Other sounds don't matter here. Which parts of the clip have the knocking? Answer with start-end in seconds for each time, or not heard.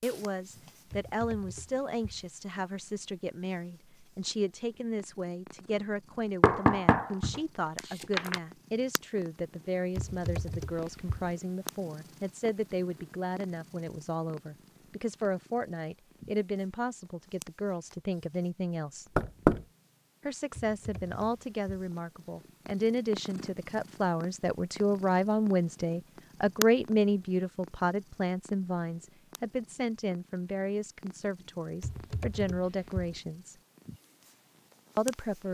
6.4-8.4, 19.1-19.6.